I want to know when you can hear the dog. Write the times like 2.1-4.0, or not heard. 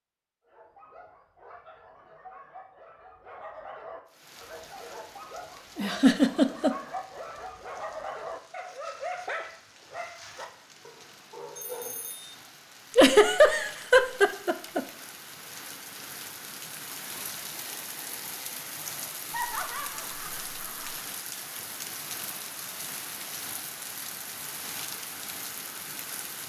0.5-12.1.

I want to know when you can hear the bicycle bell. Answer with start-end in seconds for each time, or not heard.
11.6-12.3.